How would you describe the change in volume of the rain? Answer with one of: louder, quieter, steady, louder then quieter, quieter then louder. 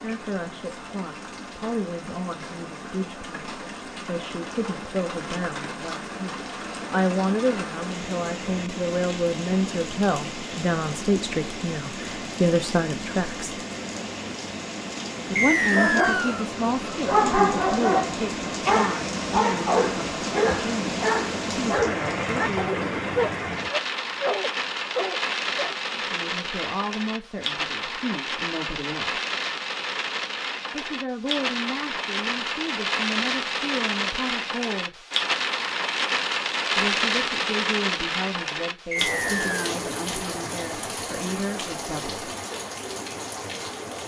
louder.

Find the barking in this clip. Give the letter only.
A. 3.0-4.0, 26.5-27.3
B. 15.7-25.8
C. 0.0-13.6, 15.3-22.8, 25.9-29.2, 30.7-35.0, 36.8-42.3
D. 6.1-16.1
B.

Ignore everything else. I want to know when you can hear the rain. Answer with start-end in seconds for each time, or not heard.
0.0-44.0.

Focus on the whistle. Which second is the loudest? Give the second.
16 s.